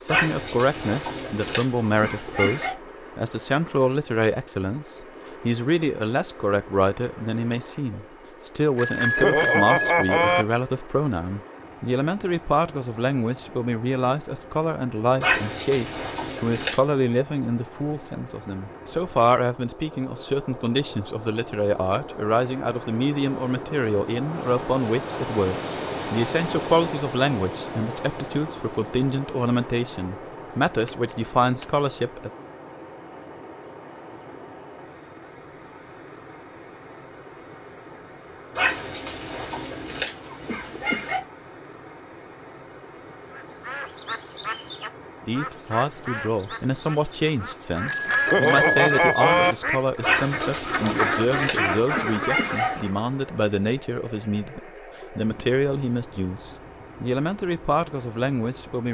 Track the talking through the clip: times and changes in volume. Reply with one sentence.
The talking can be heard from 0.0 to 32.3 s, at a steady volume; and from 45.2 to 58.9 s, at a steady volume.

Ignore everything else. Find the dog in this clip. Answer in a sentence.
You can hear the dog from 0.1 to 2.8 s, from 15.2 to 16.8 s, from 38.5 to 41.2 s and from 50.0 to 52.9 s.